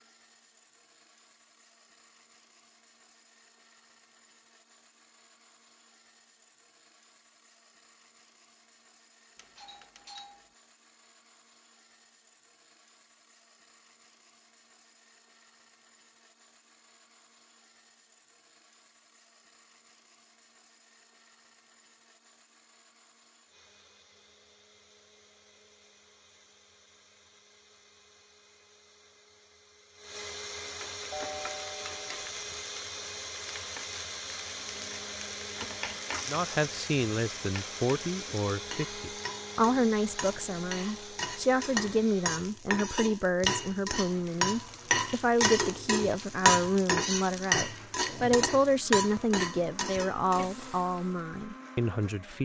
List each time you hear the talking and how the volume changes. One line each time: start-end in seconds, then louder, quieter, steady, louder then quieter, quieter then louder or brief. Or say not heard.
36.2-52.3 steady.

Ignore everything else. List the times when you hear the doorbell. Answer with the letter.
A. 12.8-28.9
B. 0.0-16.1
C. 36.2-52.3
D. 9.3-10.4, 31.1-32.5
D.